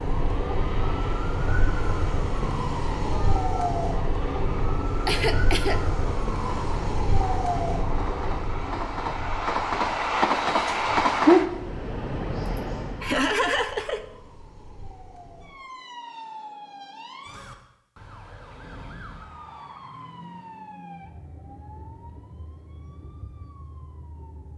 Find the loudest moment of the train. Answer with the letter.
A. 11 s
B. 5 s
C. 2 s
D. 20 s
A.